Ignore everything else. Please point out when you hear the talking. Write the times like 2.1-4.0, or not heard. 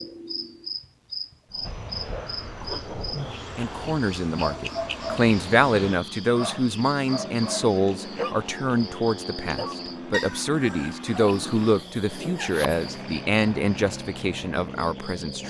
3.5-15.4.